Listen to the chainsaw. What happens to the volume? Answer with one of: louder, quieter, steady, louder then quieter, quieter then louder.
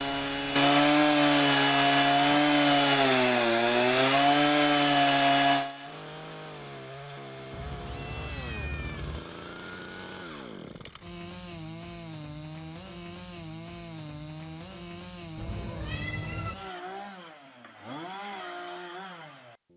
quieter.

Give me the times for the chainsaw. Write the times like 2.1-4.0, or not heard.
0.0-19.7.